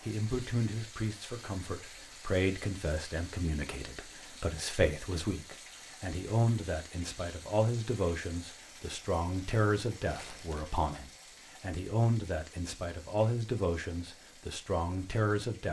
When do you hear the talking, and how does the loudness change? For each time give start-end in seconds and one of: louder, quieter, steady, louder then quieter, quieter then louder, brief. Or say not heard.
0.0-15.6 steady.